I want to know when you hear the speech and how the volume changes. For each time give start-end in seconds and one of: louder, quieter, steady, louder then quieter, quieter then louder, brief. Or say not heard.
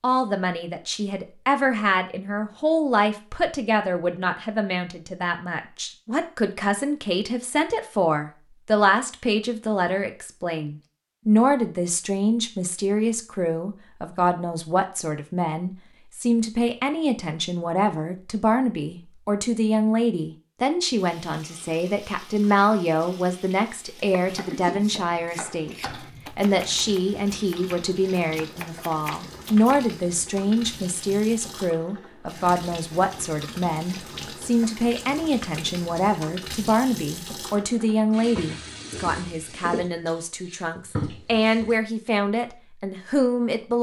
0.0-43.7 steady.